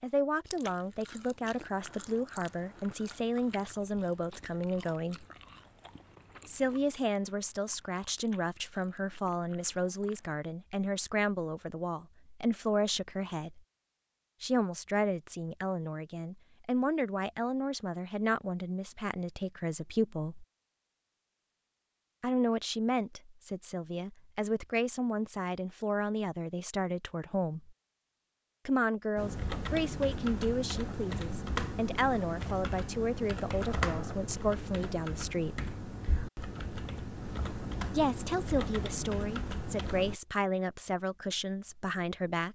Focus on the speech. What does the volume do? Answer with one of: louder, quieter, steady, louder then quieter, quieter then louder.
steady.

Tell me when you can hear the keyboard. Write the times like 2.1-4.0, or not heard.
29.1-40.2.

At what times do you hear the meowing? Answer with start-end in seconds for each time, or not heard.
not heard.